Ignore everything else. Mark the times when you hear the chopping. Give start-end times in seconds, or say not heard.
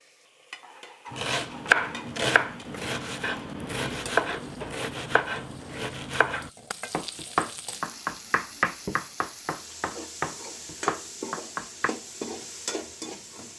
1.1-11.9.